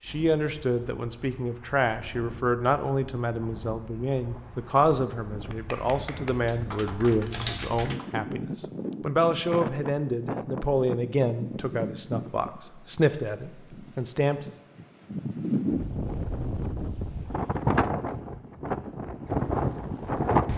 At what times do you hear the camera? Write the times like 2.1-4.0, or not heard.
7.2-7.7.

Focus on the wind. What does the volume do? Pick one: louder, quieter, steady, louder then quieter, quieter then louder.
louder.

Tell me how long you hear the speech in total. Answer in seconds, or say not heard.
14 s.